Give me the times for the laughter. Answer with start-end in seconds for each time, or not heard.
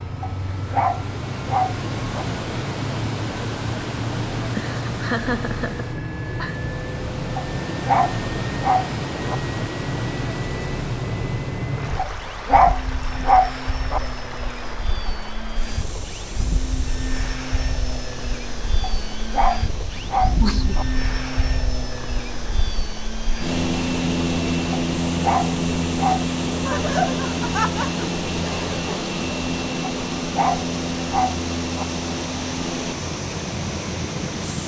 4.5-6.5, 19.9-20.8, 26.6-28.8.